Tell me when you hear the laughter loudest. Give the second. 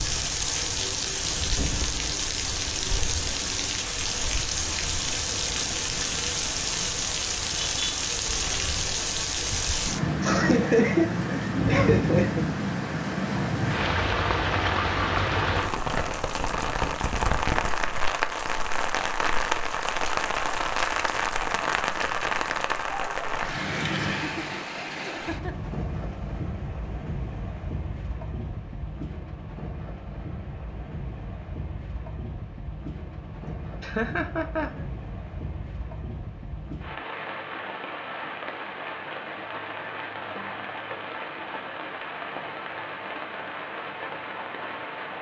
11 s.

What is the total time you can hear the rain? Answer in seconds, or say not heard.
45 s.